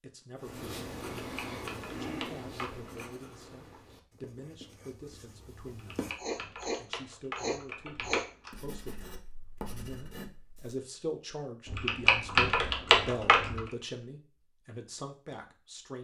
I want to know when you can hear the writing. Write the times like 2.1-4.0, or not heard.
0.3-10.8.